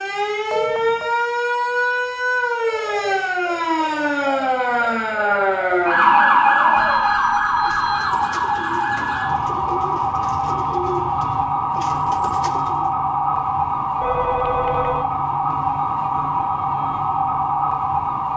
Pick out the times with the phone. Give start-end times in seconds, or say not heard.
0.5-1.1, 6.8-8.2, 14.0-15.1.